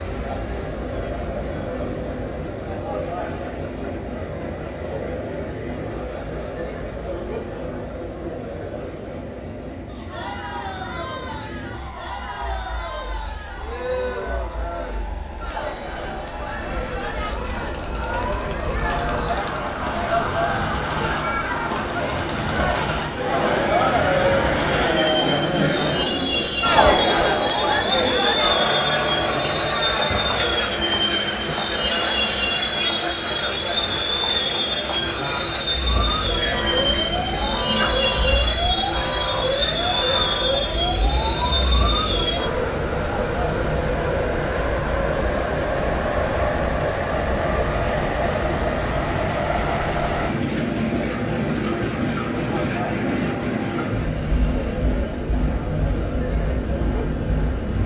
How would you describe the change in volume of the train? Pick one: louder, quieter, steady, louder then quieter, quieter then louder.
louder.